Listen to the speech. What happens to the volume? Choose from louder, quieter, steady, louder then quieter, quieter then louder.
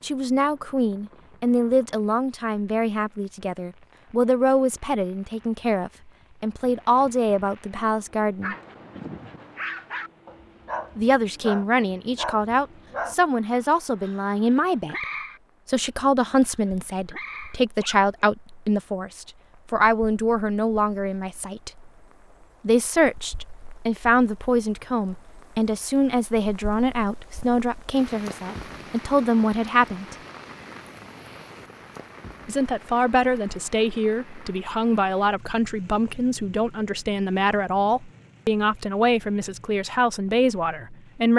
steady.